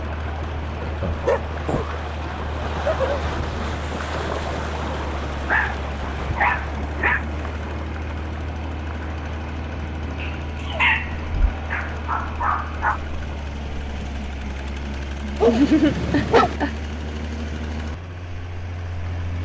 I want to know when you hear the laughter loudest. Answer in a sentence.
The loudest moment of the laughter is at 16 seconds.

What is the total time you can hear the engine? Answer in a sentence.
The engine can be heard for 19 seconds in total.